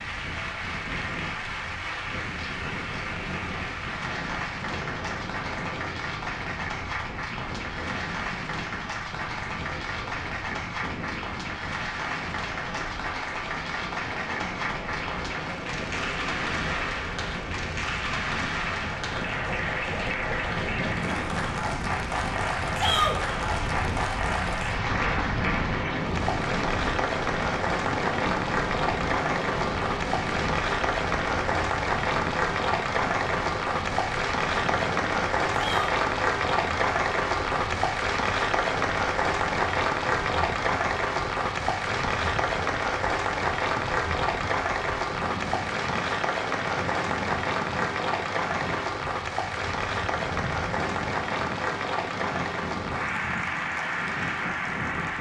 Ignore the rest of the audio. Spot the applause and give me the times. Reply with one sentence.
The applause can be heard from 0.0 to 55.1 s.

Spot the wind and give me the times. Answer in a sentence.
You can hear the wind from 0.0 to 55.1 s.